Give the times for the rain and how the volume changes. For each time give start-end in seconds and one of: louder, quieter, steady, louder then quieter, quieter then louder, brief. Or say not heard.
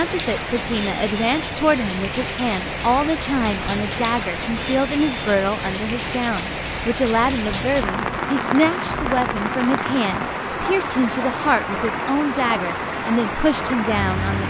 0.0-14.4 steady.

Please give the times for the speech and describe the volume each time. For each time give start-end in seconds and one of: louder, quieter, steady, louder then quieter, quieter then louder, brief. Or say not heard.
0.0-14.4 steady.